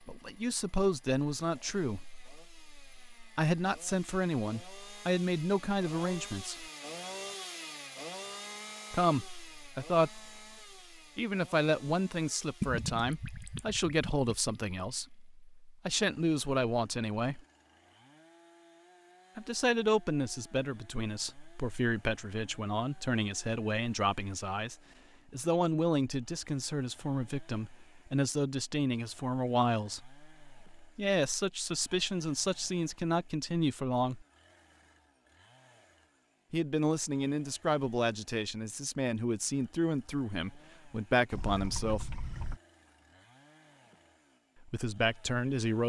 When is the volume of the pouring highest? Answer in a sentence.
The volume of the pouring peaks at 13 seconds.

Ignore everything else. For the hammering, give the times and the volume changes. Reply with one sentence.
You can't hear the hammering here.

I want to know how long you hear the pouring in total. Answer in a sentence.
The pouring can be heard for 3 seconds in total.